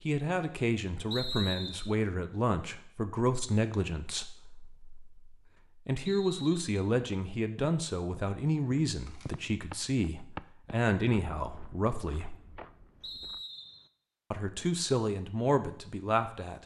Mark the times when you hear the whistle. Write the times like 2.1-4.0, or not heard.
1.1-1.9, 6.0-6.9, 13.0-13.9.